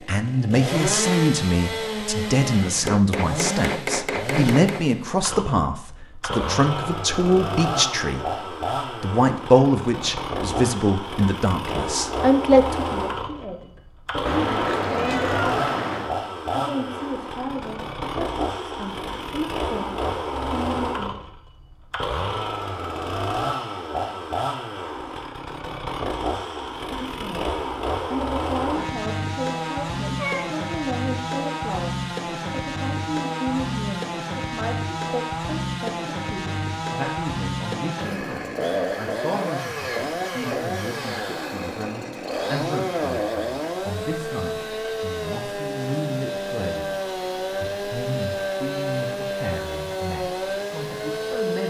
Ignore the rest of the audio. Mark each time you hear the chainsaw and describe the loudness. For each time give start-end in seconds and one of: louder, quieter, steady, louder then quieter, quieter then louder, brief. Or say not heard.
0.0-51.6 steady.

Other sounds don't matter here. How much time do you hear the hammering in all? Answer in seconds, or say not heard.
2 s.